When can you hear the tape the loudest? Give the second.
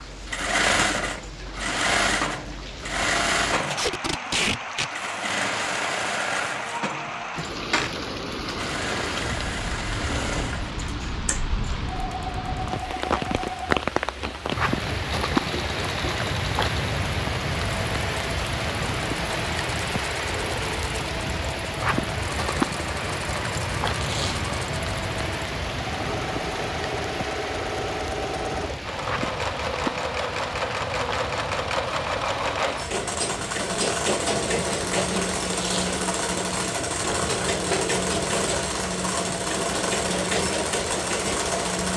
4 s.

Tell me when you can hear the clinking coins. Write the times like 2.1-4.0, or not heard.
not heard.